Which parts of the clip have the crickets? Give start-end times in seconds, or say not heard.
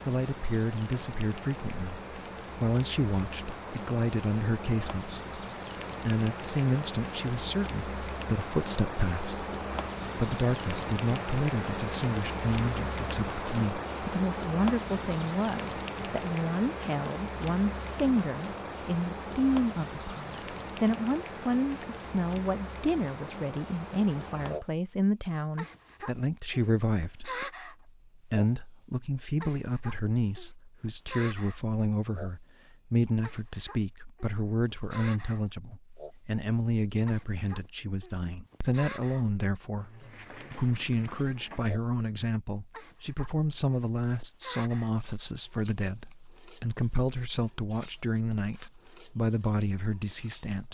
0.0-50.6.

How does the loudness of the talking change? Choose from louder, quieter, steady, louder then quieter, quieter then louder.
steady.